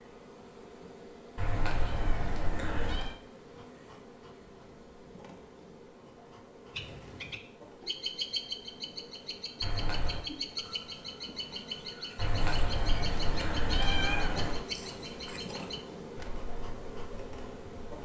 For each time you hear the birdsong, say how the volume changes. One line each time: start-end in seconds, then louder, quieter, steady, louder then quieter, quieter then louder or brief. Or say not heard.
6.7-18.0 quieter.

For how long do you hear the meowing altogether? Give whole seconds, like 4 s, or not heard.
5 s.